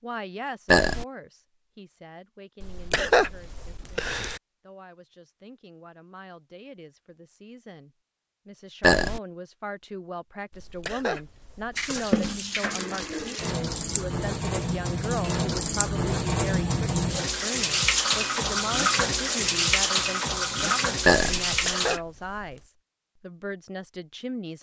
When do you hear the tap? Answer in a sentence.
The tap can be heard from 11.8 to 22.0 s.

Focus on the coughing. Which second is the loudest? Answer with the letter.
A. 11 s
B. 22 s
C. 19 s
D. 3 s
D.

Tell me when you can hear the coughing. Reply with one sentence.
You can hear the coughing from 2.6 to 4.4 s, from 10.5 to 12.2 s and from 21.4 to 22.6 s.